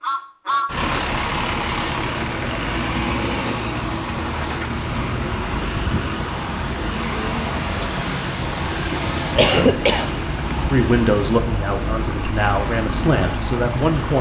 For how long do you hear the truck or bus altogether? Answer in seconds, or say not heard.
14 s.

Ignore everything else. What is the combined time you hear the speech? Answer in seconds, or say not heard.
4 s.